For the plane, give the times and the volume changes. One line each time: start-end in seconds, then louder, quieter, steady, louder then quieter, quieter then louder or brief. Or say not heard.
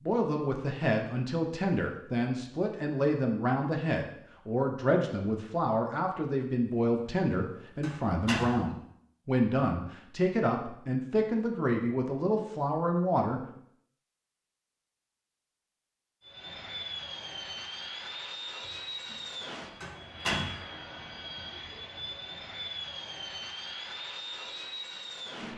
16.2-25.5 steady.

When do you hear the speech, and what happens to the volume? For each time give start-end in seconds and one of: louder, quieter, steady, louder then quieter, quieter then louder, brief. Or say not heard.
0.0-13.4 steady.